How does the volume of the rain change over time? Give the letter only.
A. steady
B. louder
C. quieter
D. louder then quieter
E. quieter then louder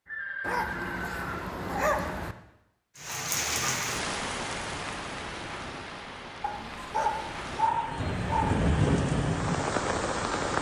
E.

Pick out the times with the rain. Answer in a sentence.
The rain can be heard from 3.0 to 10.5 s.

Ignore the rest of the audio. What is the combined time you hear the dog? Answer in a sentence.
You can hear the dog for 4 seconds altogether.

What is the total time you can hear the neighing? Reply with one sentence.
You can hear the neighing for 2 seconds altogether.